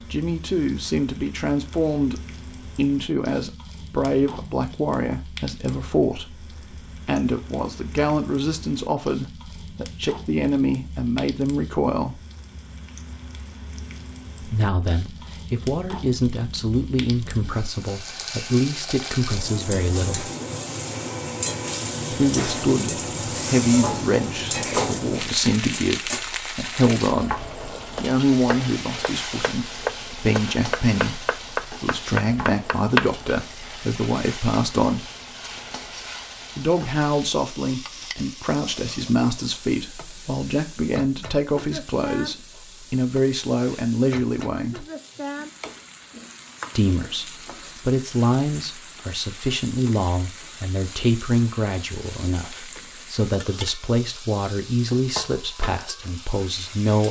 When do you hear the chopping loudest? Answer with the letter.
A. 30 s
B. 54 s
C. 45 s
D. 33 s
D.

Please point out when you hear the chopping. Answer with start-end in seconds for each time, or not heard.
27.8-33.1.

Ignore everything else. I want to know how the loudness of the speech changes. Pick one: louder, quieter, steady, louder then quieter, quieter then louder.
steady.